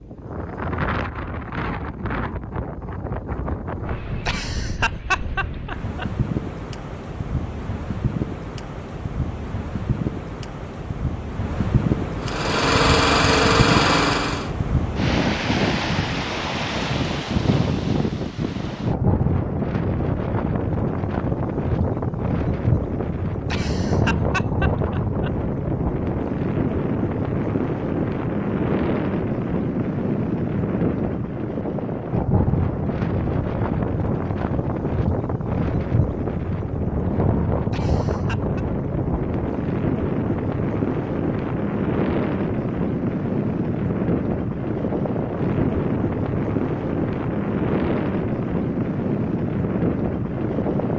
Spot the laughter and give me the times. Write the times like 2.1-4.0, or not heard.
4.2-6.0, 23.5-25.3, 37.7-38.6.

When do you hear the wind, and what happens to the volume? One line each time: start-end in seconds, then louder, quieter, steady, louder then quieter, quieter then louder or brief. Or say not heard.
0.0-50.9 louder.